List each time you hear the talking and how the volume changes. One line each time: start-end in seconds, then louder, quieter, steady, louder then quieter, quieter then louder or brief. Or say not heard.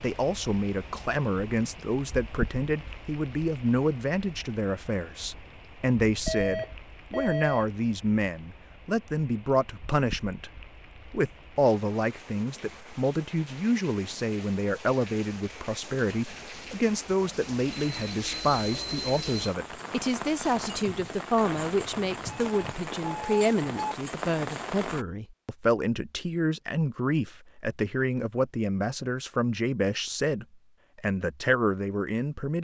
0.0-32.5 steady.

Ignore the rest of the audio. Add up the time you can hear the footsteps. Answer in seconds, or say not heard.
not heard.